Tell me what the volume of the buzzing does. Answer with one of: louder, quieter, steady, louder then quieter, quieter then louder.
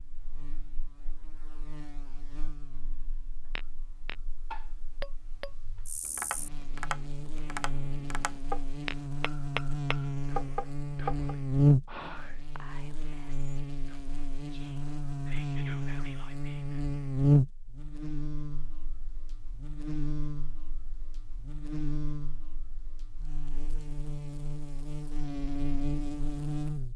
louder then quieter.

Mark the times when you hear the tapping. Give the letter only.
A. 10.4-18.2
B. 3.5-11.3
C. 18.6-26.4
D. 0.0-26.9
B.